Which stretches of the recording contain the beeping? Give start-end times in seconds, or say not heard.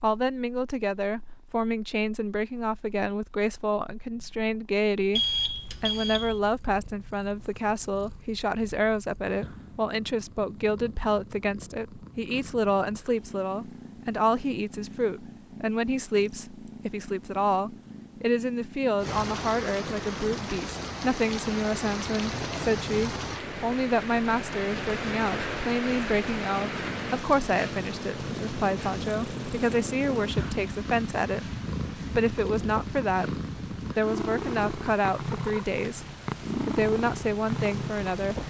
5.1-6.4.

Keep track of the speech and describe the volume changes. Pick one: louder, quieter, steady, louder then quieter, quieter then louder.
steady.